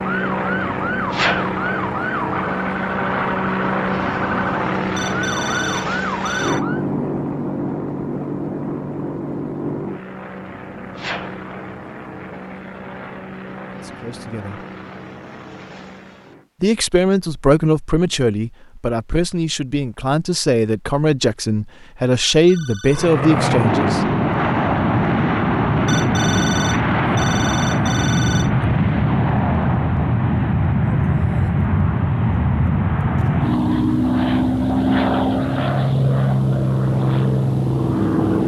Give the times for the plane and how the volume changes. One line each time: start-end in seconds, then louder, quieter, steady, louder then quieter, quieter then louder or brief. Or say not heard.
0.0-16.5 quieter
22.9-38.4 steady.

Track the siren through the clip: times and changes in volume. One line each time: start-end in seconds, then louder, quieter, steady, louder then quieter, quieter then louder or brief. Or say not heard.
0.0-6.8 steady.